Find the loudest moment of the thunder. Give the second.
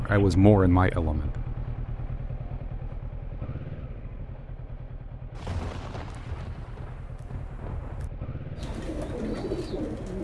6 s.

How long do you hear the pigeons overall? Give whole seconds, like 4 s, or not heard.
2 s.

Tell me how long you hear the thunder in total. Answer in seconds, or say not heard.
3 s.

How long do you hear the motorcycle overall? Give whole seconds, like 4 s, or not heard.
10 s.